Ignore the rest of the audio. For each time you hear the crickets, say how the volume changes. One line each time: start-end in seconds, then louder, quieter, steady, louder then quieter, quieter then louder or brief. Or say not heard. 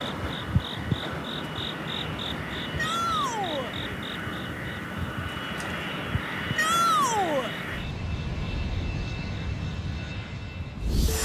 0.0-11.2 quieter.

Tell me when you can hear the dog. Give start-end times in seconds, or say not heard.
not heard.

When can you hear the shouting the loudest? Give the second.
7 s.